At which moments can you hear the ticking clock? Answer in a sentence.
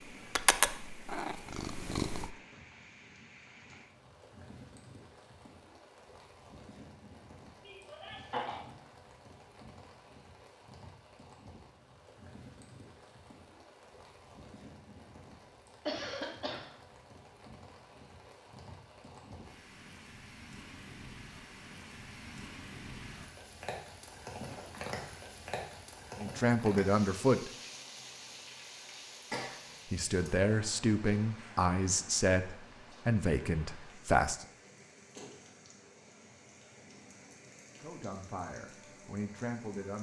You can't hear the ticking clock here.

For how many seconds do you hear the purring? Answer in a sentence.
You can hear the purring for 2 seconds altogether.